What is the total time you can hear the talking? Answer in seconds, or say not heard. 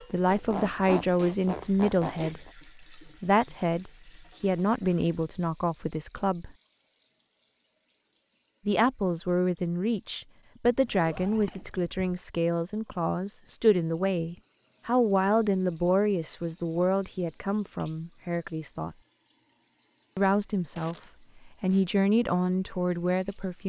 20 s.